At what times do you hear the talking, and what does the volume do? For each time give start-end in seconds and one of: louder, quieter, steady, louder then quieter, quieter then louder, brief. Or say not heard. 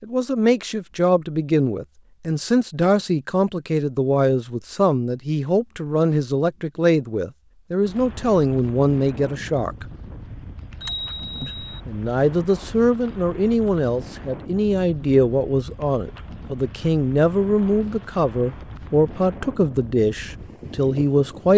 0.0-9.8 steady
11.4-21.5 steady.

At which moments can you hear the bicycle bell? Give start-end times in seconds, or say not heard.
10.8-11.8.